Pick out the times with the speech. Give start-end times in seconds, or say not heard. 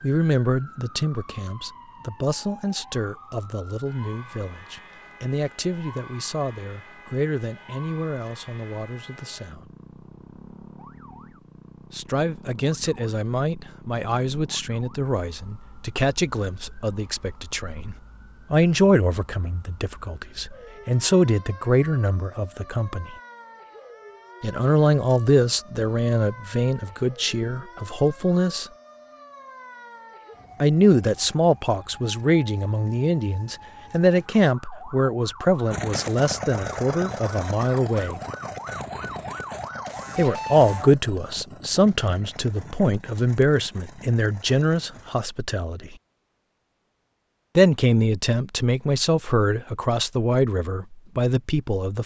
0.0-9.7, 11.9-23.1, 24.4-28.6, 30.6-38.2, 40.1-46.0, 47.5-52.0.